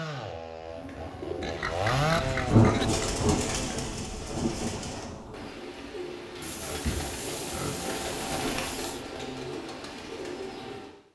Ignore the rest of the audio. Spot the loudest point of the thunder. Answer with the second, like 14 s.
3 s.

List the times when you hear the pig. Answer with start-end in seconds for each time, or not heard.
1.4-3.0, 6.4-9.1.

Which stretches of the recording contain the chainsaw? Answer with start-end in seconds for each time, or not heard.
0.0-3.9.